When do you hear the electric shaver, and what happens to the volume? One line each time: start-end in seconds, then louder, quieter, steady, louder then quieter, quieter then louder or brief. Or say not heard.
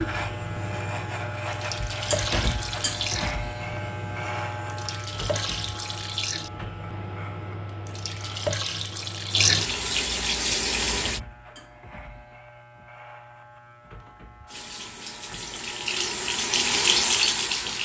0.0-17.8 quieter.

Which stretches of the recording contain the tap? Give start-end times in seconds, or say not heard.
0.0-11.2, 14.4-17.8.